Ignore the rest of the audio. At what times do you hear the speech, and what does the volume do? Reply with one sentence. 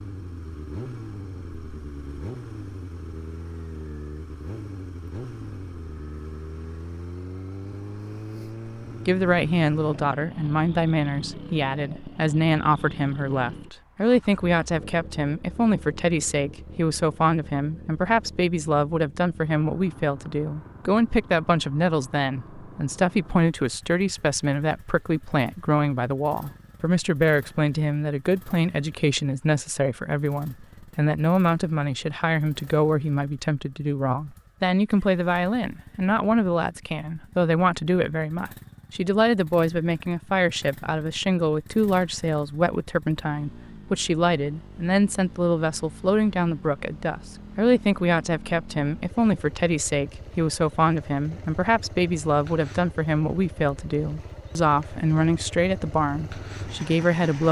You can hear the speech from 9.1 to 57.4 s, at a steady volume.